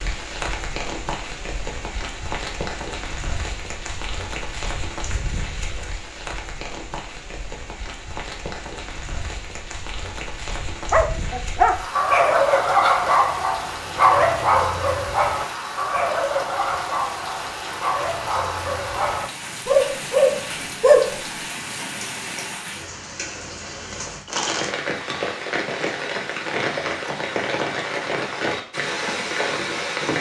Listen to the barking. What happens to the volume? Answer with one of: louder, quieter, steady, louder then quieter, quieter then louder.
quieter then louder.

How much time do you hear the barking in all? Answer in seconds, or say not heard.
10 s.